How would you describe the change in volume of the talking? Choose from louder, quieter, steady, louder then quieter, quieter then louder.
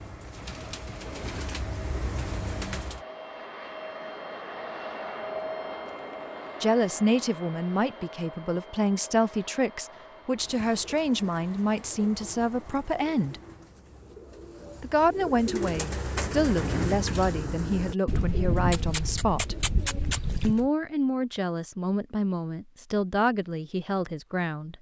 steady.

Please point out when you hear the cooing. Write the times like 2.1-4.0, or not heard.
0.0-3.0, 10.3-20.7.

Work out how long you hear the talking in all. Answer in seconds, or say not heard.
16 s.